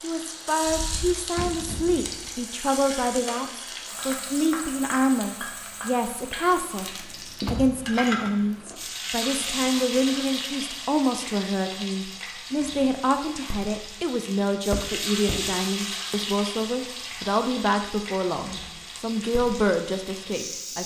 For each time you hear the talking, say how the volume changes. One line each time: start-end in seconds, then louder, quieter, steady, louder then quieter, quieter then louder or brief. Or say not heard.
0.0-20.8 steady.